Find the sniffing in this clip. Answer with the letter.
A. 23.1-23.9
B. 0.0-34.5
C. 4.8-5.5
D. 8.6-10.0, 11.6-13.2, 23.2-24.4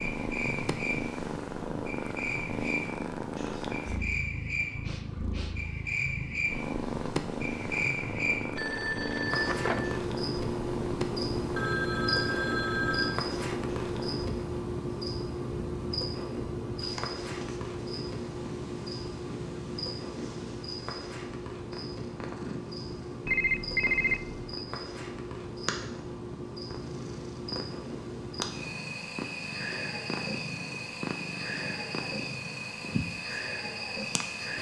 C.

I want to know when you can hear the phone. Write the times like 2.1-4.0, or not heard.
8.6-10.0, 11.6-13.2, 23.2-24.4.